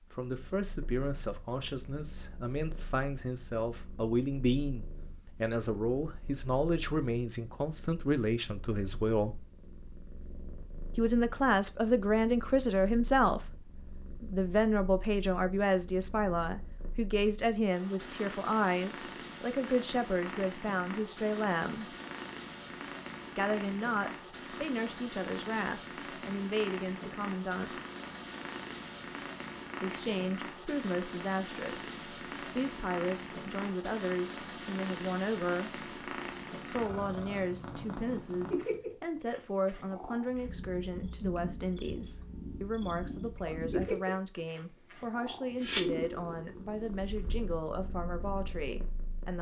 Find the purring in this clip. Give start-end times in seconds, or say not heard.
0.0-49.3.